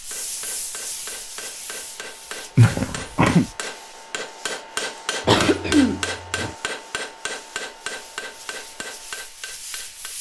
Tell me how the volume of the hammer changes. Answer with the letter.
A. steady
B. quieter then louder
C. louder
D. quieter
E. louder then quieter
E.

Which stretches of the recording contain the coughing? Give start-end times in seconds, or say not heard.
2.5-3.5, 5.2-6.5.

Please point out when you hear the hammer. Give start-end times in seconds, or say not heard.
0.1-10.1.